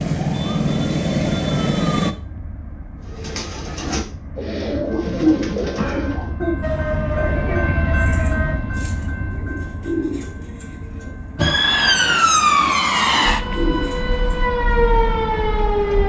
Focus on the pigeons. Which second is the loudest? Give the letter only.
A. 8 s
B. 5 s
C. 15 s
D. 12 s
B.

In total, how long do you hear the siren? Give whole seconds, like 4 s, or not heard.
9 s.